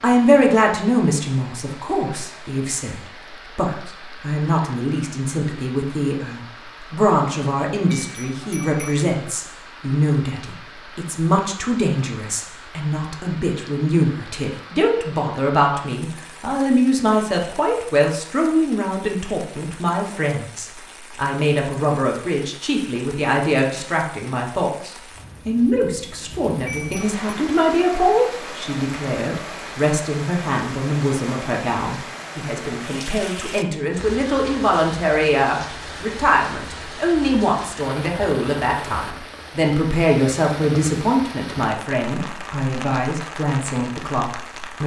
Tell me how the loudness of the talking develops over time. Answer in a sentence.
The volume of the talking stays about the same.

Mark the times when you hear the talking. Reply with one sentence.
The talking can be heard from 0.0 to 44.8 s.